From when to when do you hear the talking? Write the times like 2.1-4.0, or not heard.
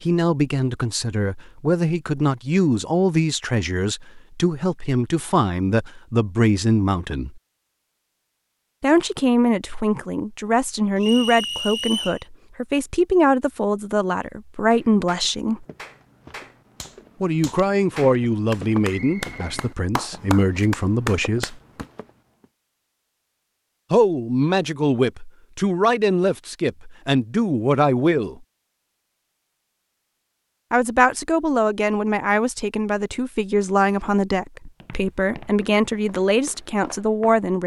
0.0-7.4, 8.8-15.7, 17.2-21.6, 23.9-28.4, 30.7-37.6.